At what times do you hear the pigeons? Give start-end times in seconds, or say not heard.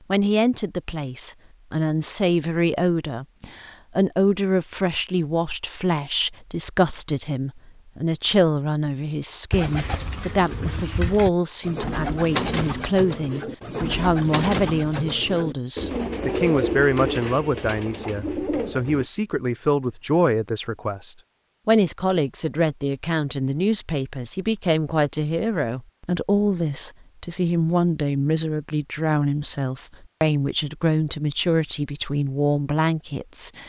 9.5-19.1.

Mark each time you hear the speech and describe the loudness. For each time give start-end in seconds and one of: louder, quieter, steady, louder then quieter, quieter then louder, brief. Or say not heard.
0.1-33.6 steady.